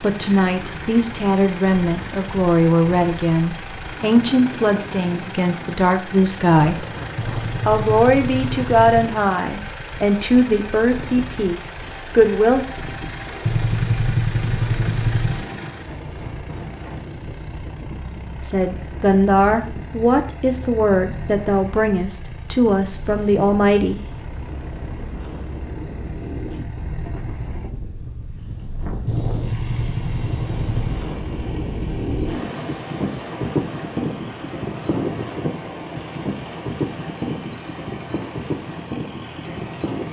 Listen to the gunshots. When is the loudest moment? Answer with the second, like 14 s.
14 s.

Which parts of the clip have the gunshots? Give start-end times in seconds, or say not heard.
7.2-9.2, 13.4-15.4, 29.1-31.1.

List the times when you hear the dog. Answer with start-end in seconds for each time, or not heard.
not heard.